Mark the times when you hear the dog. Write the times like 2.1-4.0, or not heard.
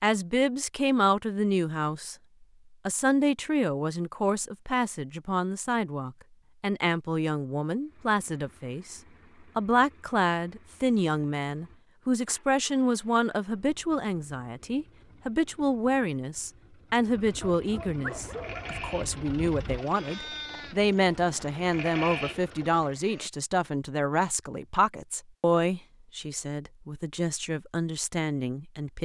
17.4-18.8.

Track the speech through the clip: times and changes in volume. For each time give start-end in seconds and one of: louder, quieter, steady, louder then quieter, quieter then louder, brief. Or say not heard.
0.0-2.1 brief
2.9-29.0 steady.